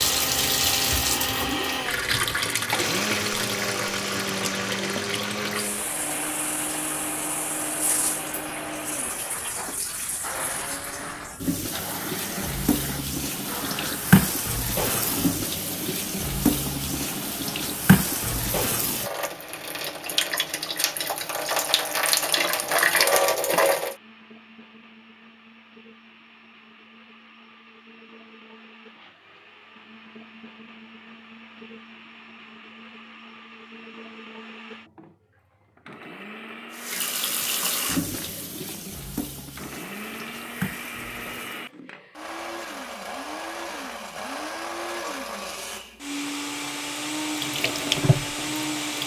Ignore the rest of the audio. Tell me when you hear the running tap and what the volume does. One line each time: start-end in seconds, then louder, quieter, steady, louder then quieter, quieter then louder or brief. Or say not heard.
0.0-23.9 quieter then louder
36.7-41.7 quieter then louder
46.1-49.0 brief.